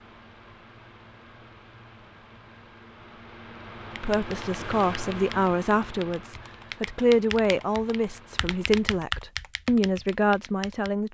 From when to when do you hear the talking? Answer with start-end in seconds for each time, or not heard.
4.0-11.0.